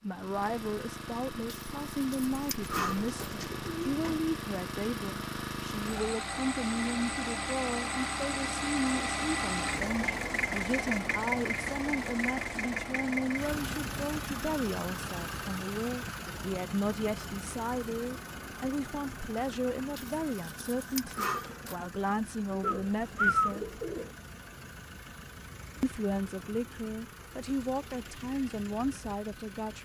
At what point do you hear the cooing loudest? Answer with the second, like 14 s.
23 s.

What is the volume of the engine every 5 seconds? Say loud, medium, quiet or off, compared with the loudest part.
medium, loud, loud, medium, quiet, quiet.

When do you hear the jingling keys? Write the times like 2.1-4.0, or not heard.
1.4-3.2, 19.9-21.8.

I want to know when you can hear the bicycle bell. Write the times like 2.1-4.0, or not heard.
not heard.